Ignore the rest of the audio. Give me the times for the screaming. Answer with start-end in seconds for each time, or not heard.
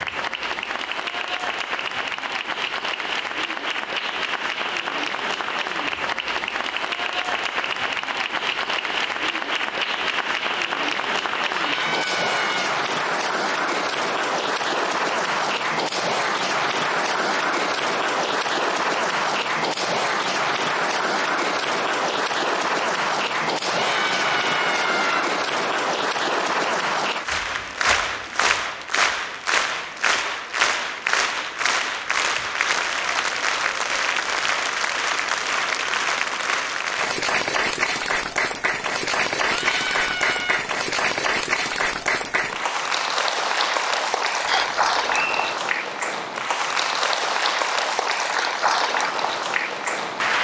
11.5-12.8, 23.6-25.2, 39.5-40.6.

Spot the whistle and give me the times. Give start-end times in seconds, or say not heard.
44.5-45.5.